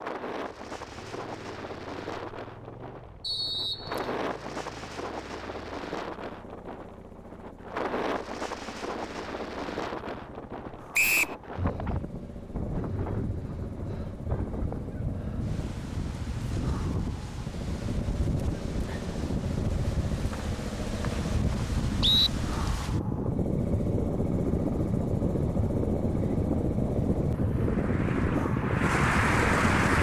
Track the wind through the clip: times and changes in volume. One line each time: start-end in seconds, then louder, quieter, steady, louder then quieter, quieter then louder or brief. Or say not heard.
0.0-29.9 louder.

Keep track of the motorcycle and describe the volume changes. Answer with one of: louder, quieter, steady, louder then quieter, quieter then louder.
louder.